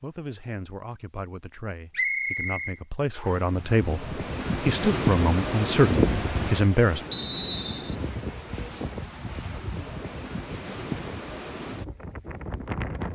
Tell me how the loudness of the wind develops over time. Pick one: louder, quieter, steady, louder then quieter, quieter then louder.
quieter.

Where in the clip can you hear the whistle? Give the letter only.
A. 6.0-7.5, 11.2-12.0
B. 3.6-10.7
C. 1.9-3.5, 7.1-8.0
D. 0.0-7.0
C.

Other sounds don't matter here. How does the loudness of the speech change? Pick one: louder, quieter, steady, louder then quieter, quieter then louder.
louder.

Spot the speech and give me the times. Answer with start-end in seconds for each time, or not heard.
0.0-7.0.